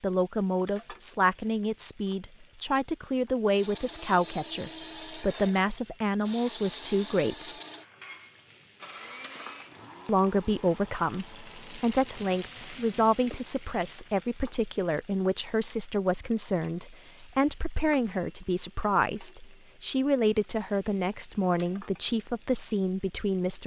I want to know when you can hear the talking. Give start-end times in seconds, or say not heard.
0.0-7.5, 10.1-23.6.